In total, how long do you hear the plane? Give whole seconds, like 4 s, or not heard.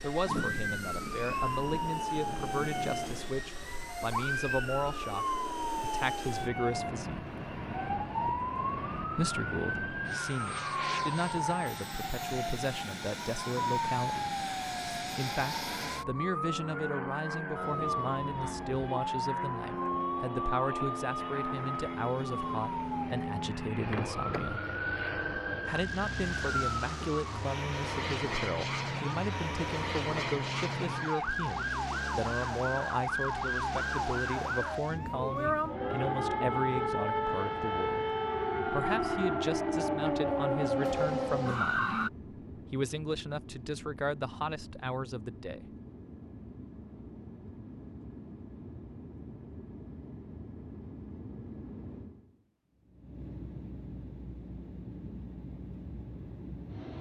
57 s.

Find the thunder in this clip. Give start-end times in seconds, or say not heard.
0.2-3.4.